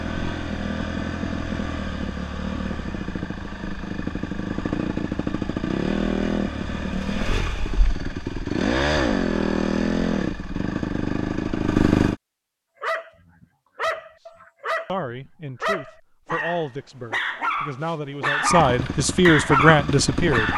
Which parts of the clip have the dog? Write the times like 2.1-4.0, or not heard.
12.8-14.9, 15.6-20.5.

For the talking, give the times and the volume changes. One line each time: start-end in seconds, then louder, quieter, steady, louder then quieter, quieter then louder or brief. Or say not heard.
14.8-20.5 louder.